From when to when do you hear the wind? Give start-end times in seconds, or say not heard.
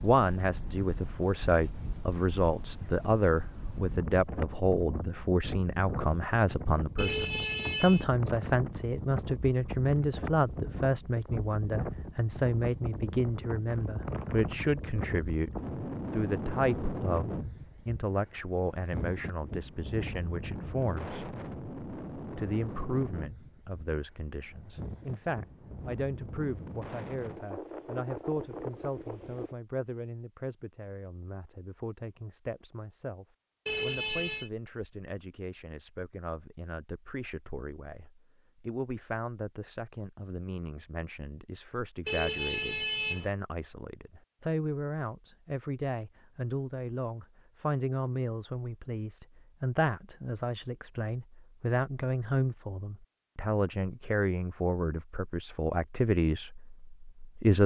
0.0-29.6.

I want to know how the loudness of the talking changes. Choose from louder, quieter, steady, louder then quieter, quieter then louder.
quieter then louder.